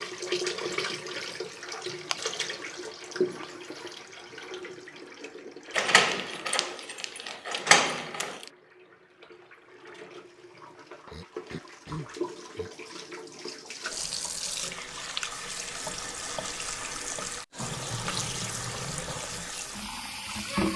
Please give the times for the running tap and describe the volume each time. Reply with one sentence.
You can hear the running tap from 0.0 to 20.7 s, getting quieter then louder.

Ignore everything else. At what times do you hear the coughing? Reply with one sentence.
The coughing can be heard from 11.1 to 12.7 s.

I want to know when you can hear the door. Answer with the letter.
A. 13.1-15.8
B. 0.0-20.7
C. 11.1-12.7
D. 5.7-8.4
D.